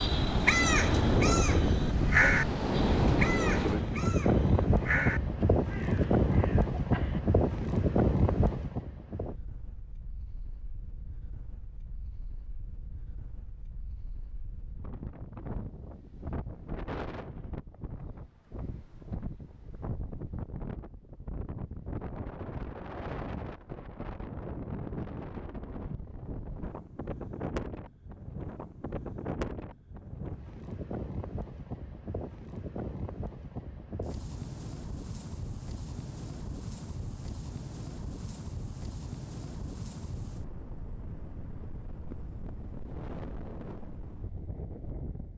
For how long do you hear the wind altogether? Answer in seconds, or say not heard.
45 s.